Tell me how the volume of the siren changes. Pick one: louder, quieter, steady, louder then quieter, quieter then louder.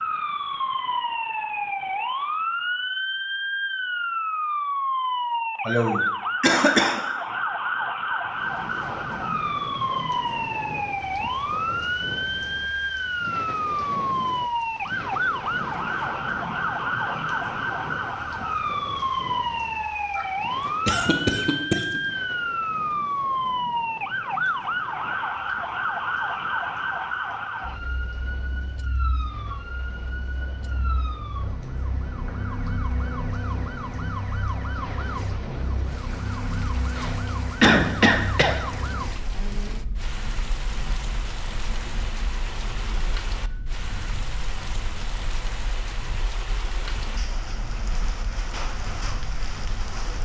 quieter.